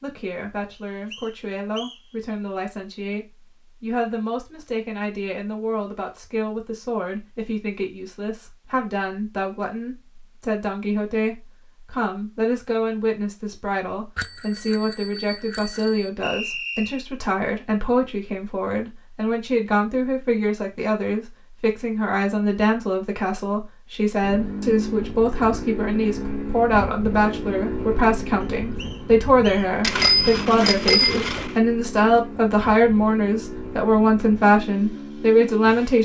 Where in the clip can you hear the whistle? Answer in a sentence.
The whistle can be heard from 0.7 to 2.0 s, from 16.2 to 17.1 s and from 28.4 to 29.7 s.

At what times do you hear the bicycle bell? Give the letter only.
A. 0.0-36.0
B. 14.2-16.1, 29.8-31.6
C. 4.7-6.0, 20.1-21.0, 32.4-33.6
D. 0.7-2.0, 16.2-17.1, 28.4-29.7
B.